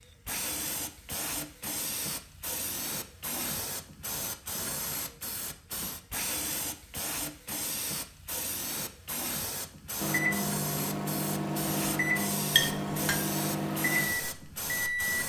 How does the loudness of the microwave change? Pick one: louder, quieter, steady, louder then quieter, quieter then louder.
steady.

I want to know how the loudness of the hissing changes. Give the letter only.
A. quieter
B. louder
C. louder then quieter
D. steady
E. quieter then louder
D.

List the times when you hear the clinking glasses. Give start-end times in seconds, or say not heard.
12.5-13.2.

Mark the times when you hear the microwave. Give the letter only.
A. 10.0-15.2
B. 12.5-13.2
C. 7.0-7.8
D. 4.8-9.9
A.